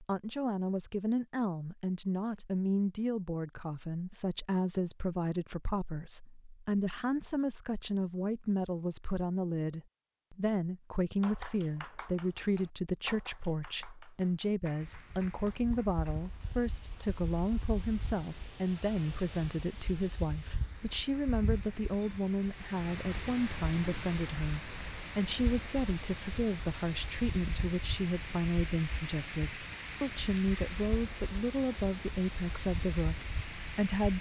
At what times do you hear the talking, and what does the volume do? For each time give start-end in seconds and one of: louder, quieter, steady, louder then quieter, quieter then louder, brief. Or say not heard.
0.0-34.1 steady.